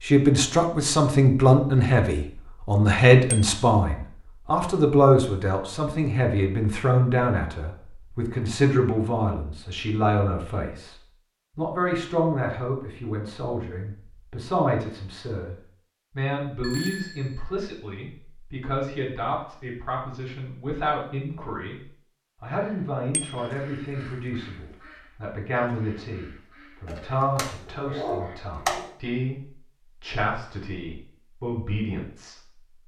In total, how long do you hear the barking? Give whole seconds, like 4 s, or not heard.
2 s.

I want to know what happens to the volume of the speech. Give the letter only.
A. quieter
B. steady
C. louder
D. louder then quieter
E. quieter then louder
A.